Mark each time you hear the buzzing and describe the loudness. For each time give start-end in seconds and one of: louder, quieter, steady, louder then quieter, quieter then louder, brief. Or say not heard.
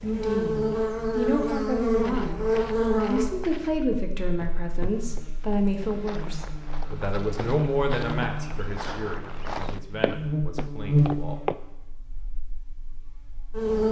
0.0-13.8 quieter then louder.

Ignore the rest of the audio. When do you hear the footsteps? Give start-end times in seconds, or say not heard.
2.0-11.6.